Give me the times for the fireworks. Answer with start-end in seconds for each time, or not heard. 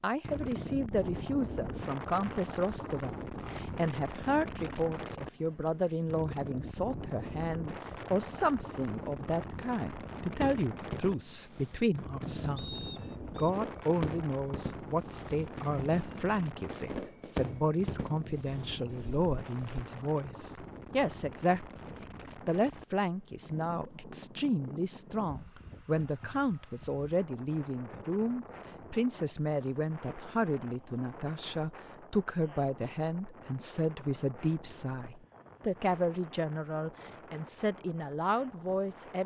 10.3-19.9.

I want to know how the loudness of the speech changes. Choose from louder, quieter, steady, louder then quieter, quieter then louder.
steady.